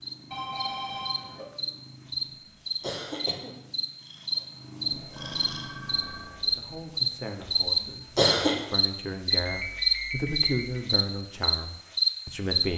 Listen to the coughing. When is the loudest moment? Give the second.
8 s.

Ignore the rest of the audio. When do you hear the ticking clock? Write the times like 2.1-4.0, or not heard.
not heard.